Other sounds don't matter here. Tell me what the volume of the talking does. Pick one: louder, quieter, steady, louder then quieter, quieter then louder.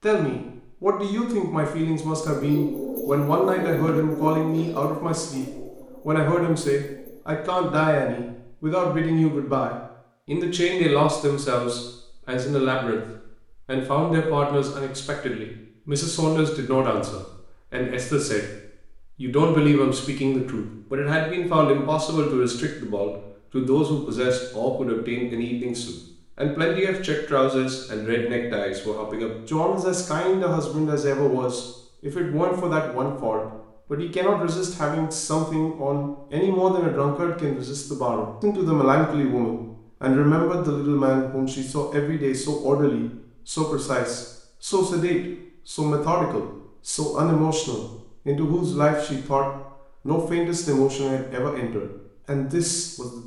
steady.